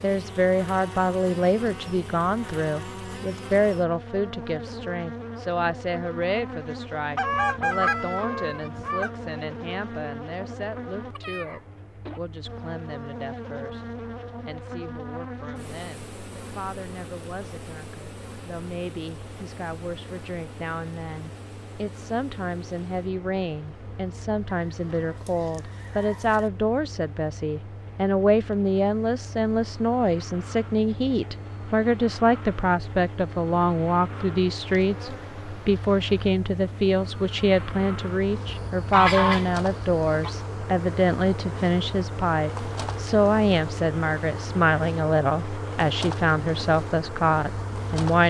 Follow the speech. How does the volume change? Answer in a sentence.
The volume of the speech goes down, then up.